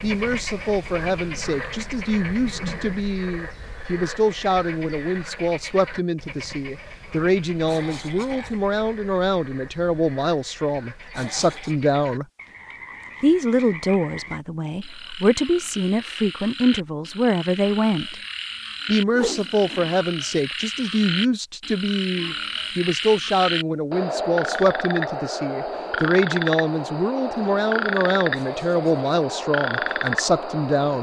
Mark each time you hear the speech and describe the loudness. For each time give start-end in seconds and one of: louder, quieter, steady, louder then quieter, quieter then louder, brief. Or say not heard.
0.0-12.2 steady
13.2-18.1 quieter then louder
18.9-30.9 steady.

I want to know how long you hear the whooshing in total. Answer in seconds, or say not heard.
2 s.